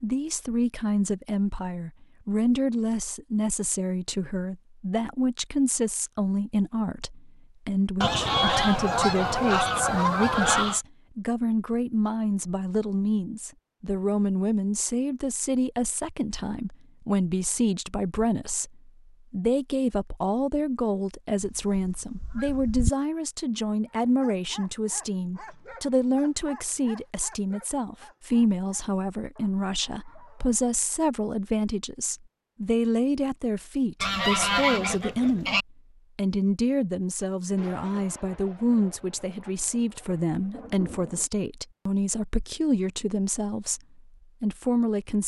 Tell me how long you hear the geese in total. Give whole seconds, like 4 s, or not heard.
6 s.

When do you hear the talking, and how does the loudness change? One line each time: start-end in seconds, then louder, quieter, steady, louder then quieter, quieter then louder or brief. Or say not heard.
0.0-45.2 steady.